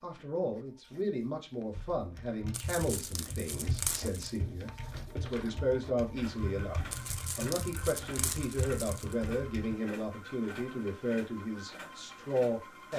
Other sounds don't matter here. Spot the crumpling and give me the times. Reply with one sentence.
The crumpling can be heard from 2.5 to 4.4 s and from 6.9 to 9.2 s.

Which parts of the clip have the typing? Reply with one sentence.
The typing can be heard from 1.8 to 9.8 s.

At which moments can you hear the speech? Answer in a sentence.
You can hear the speech from 0.0 to 12.9 s.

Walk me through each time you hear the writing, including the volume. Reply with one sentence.
You can't hear the writing here.